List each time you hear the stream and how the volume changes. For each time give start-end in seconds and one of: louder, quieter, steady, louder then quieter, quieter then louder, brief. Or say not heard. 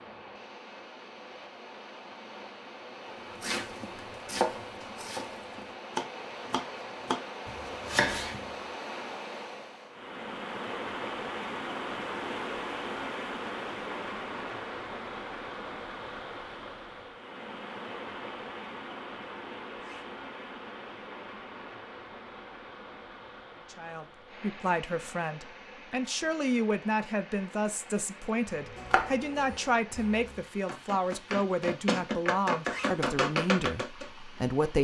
0.0-34.7 louder then quieter.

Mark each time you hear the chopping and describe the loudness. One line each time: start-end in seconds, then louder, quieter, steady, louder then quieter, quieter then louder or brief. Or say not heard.
3.4-8.5 quieter then louder
28.4-34.0 quieter then louder.